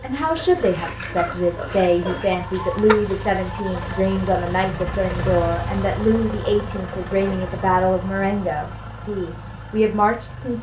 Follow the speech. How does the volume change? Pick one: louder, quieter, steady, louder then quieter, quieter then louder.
steady.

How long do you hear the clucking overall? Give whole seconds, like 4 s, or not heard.
2 s.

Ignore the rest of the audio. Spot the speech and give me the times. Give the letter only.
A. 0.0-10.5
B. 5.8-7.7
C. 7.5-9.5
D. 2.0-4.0
A.